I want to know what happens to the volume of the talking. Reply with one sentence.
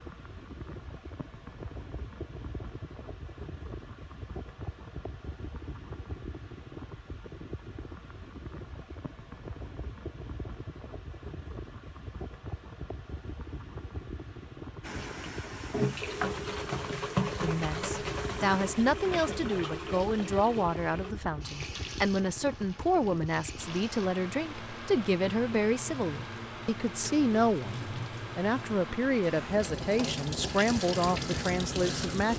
The volume of the talking stays about the same.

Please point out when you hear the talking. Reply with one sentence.
You can hear the talking from 17.4 to 32.3 s.